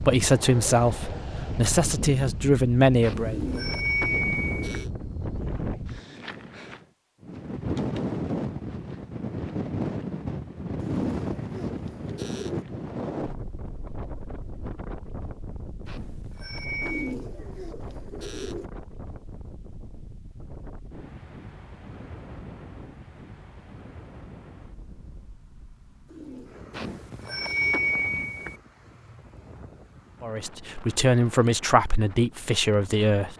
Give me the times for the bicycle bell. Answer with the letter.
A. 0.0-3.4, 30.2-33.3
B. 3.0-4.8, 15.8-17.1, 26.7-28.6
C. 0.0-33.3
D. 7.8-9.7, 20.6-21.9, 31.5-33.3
B.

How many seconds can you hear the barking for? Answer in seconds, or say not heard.
not heard.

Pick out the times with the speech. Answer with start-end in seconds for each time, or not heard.
0.0-3.4, 30.2-33.3.